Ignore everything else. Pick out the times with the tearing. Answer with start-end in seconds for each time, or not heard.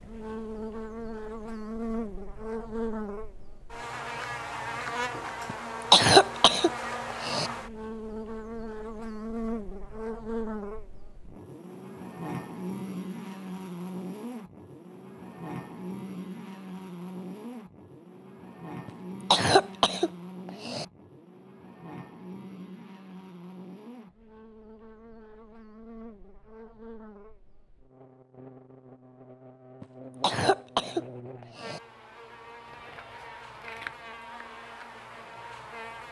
32.6-34.0.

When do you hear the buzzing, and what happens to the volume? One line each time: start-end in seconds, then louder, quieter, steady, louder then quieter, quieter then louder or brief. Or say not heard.
0.0-36.0 quieter.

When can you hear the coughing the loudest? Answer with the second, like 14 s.
6 s.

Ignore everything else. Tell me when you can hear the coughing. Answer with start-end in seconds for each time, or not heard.
5.5-7.5, 18.9-20.9, 29.8-31.8.